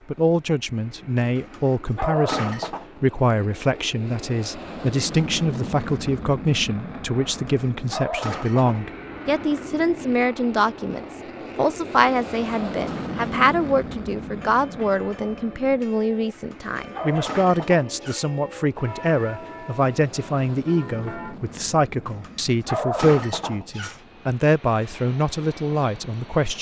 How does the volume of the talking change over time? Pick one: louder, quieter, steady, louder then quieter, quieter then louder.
steady.